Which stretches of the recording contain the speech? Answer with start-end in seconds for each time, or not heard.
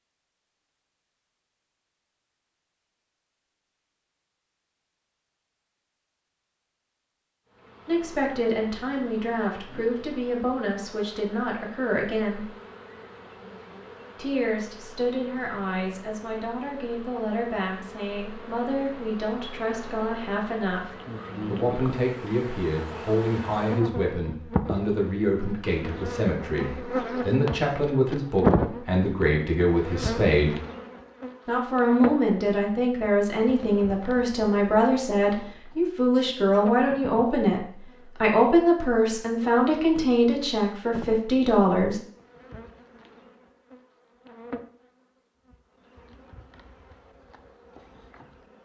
7.8-12.4, 14.2-30.6, 31.4-37.6, 38.2-42.0.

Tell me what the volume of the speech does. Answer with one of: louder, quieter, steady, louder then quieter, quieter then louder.
louder.